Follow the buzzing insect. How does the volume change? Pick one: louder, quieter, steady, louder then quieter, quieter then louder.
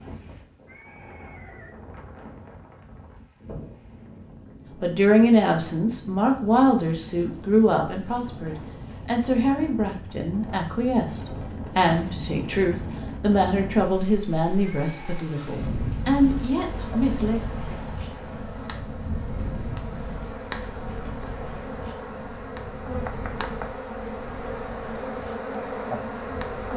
louder.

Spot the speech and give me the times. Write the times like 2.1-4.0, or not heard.
4.8-17.4.